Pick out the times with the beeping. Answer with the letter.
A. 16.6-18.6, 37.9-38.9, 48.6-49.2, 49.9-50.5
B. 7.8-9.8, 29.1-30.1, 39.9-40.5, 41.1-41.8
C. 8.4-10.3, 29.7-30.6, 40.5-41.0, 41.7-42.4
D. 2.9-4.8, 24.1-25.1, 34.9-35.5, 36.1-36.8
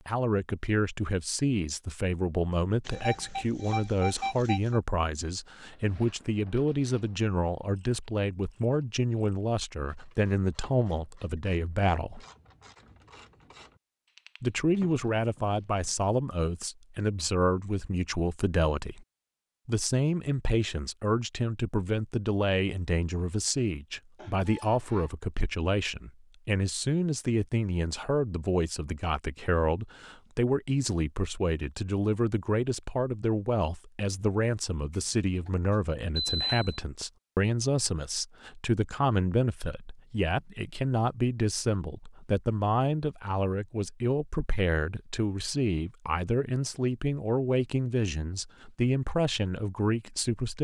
D.